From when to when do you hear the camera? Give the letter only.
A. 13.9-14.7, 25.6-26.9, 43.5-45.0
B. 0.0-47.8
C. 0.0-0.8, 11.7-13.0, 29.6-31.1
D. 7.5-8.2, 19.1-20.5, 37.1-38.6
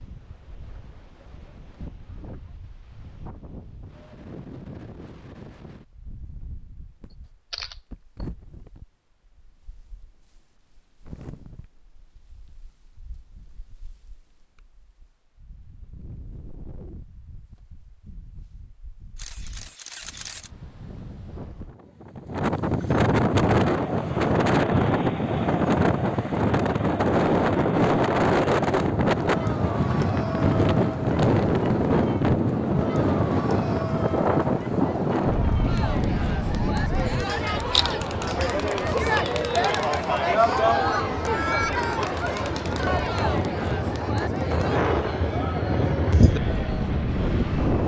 D.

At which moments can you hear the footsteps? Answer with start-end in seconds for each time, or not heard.
not heard.